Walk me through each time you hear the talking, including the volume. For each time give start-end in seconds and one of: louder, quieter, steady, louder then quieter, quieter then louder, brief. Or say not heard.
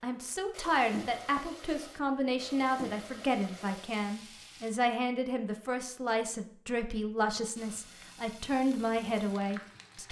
0.0-10.0 steady.